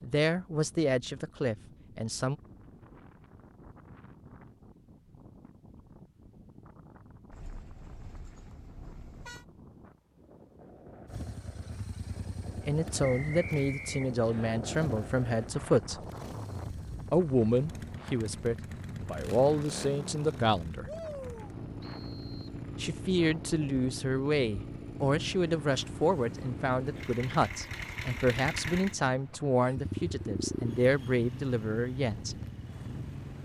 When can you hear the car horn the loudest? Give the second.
9 s.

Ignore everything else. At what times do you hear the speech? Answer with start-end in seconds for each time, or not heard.
0.0-2.4, 12.6-16.0, 17.1-20.9, 22.8-32.4.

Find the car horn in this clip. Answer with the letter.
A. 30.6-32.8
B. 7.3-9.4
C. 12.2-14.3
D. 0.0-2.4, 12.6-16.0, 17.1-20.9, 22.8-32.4
B.